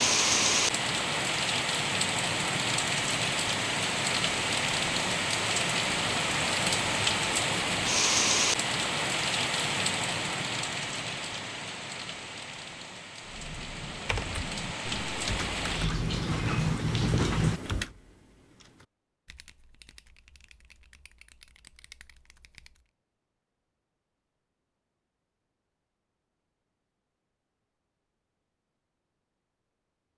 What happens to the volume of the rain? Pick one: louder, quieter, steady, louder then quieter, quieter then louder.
quieter then louder.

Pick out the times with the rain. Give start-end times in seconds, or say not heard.
0.0-17.6.